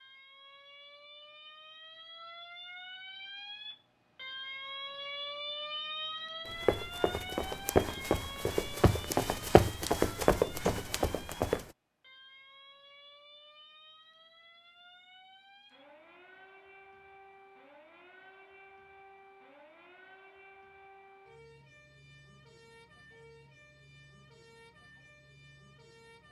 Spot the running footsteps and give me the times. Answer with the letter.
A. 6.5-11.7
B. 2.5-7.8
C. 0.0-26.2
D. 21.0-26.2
A.